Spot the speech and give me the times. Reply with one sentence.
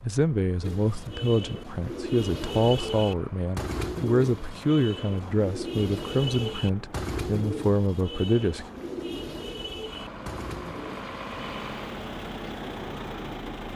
The speech can be heard from 0.0 to 8.7 s.